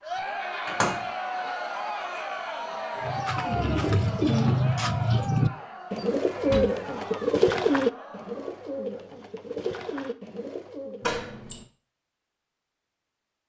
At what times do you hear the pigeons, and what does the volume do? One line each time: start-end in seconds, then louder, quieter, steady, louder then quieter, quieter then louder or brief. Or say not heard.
3.0-11.1 quieter.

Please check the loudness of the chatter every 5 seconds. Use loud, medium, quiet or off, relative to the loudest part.
loud, medium, off.